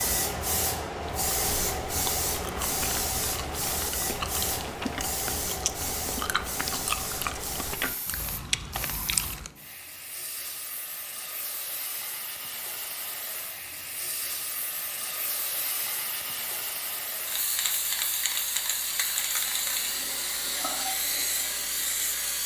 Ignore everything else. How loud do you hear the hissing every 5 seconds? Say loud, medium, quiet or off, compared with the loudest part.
loud, medium, medium, loud, loud.